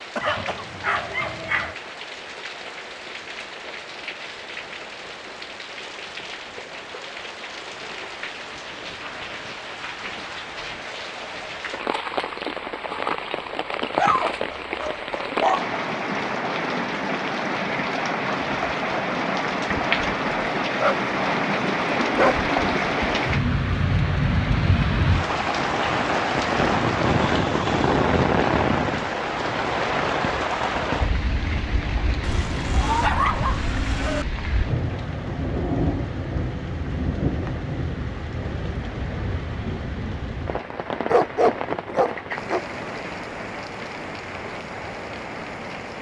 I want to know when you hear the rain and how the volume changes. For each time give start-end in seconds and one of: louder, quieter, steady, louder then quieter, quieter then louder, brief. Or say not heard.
0.0-45.9 louder then quieter.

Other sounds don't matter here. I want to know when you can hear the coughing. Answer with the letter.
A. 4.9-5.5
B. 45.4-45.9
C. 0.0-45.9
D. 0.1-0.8
D.